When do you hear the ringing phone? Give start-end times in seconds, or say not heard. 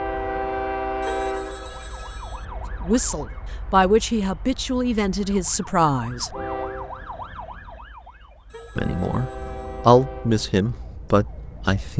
1.0-2.5, 8.5-9.8.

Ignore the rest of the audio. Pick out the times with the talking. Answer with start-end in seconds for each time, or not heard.
2.8-6.3, 8.8-11.9.